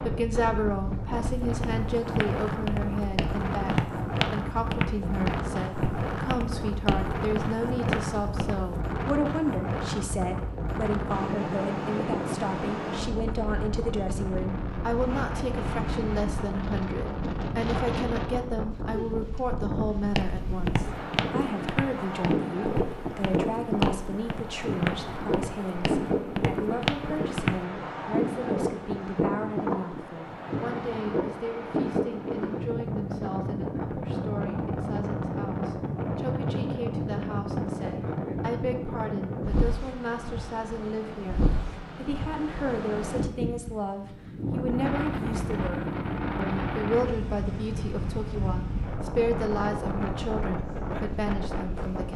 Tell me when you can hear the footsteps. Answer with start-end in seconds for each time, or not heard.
1.4-8.8, 20.1-27.6.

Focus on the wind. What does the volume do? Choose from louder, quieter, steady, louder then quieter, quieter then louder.
steady.